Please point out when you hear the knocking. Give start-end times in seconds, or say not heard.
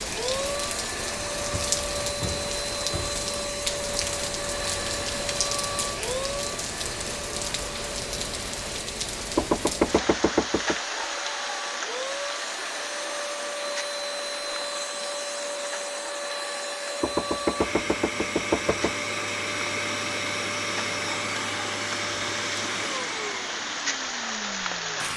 1.5-3.2, 9.3-10.8, 17.0-18.9.